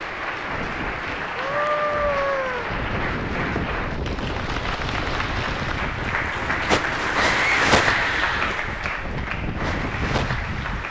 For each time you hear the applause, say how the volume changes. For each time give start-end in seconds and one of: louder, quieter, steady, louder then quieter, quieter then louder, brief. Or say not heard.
0.0-10.8 louder then quieter.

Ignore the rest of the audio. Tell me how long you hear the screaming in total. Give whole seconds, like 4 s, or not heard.
3 s.